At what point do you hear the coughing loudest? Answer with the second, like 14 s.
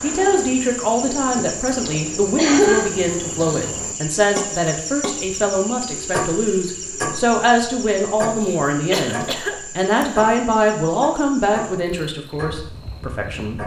3 s.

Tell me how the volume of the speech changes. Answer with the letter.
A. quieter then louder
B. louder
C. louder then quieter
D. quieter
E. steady
E.